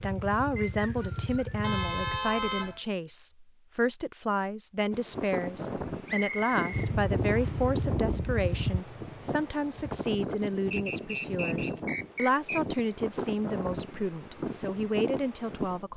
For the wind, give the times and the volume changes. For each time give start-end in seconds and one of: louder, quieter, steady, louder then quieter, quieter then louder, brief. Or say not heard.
4.9-15.9 steady.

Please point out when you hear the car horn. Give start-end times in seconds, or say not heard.
1.6-2.8.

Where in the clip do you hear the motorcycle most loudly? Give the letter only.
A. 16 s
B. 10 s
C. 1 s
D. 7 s
D.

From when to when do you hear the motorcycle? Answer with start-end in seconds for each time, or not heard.
0.0-2.2, 6.7-10.0.